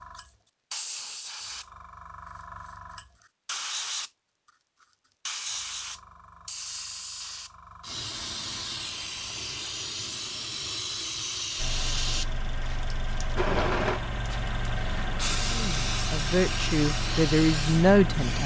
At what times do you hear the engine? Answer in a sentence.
The engine can be heard from 11.6 to 18.4 s.